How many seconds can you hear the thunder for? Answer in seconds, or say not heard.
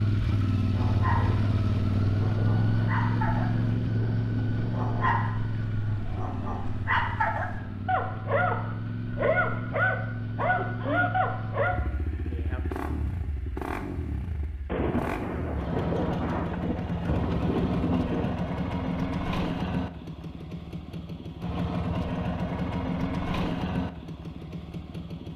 8 s.